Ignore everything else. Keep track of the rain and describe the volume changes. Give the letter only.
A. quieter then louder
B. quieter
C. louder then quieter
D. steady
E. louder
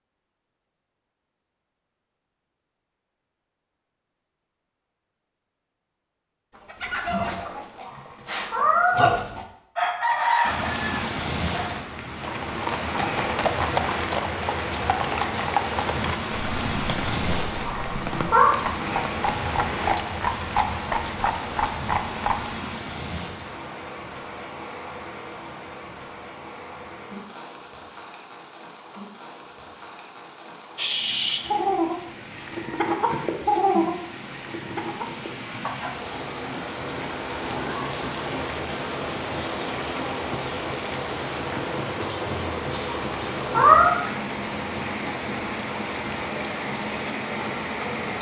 A.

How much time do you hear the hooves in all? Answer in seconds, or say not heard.
10 s.